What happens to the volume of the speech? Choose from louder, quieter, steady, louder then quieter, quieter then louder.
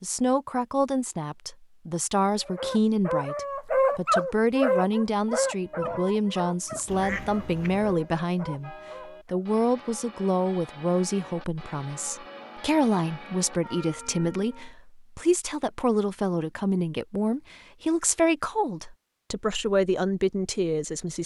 steady.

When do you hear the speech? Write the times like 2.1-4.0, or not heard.
0.0-21.2.